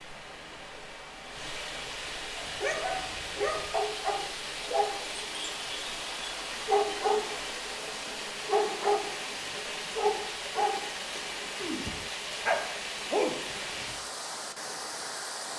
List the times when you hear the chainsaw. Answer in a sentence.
You can't hear the chainsaw here.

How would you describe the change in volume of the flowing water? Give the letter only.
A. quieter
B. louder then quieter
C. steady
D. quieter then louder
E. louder
C.